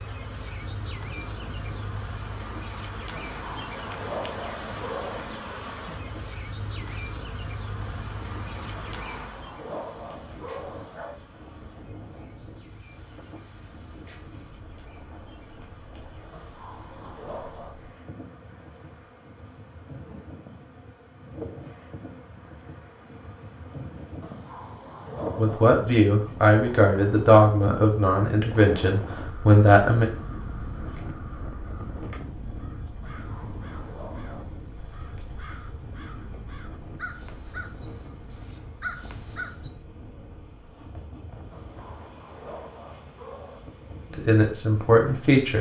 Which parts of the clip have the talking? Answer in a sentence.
The talking can be heard from 25.4 to 30.1 s and from 44.1 to 45.5 s.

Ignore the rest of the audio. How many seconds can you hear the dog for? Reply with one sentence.
You can hear the dog for 11 seconds altogether.